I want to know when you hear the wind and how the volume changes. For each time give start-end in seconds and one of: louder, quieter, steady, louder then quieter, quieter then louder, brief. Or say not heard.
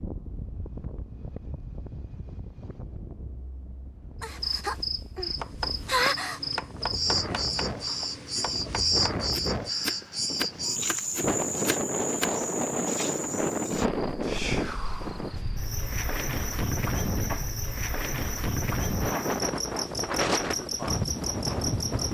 0.0-22.0 louder.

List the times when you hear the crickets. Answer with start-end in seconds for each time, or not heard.
4.2-22.0.